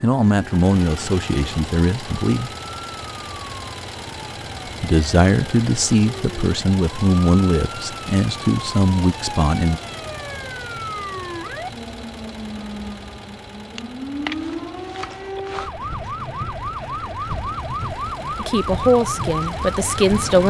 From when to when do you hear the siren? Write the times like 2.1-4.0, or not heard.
0.0-20.4.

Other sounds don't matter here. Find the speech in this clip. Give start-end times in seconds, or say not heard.
0.0-2.5, 4.8-9.8, 18.4-20.4.